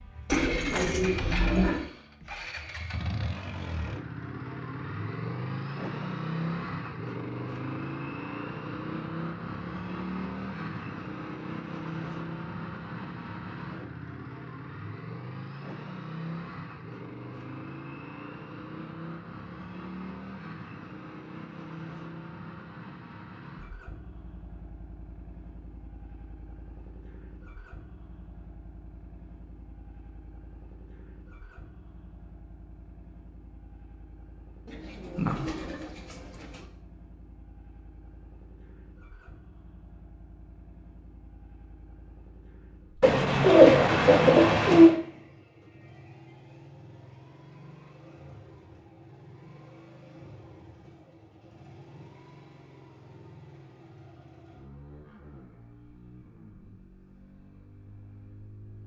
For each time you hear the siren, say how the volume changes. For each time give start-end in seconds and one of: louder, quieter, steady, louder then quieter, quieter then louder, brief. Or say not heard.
not heard.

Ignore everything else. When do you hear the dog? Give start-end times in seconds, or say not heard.
not heard.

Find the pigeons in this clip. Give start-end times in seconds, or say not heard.
0.2-1.9, 34.6-36.6, 43.0-45.0.